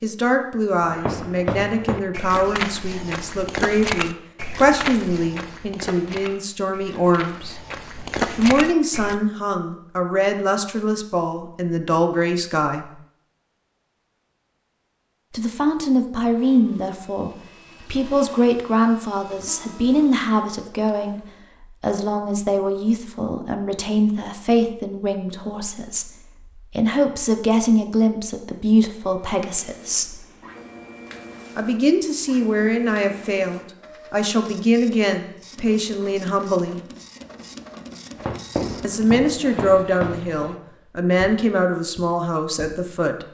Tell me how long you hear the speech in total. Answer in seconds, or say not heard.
37 s.